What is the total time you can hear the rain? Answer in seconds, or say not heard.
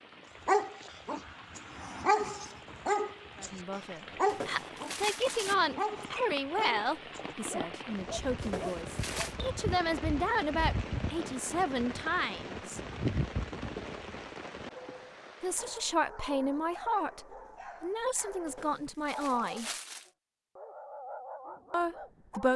16 s.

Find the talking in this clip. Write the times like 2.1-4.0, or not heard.
3.4-12.8, 15.4-19.7, 21.7-22.5.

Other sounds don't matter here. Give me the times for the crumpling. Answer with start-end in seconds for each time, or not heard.
4.2-5.5, 8.4-9.3, 18.4-20.1.